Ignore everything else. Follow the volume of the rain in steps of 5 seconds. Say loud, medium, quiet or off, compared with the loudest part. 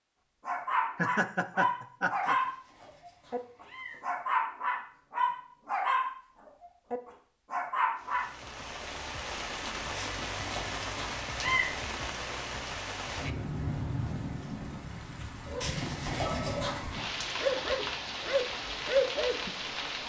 off, loud, loud, loud.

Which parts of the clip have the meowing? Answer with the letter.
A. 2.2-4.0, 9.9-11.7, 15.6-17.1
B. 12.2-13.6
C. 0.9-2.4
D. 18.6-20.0
A.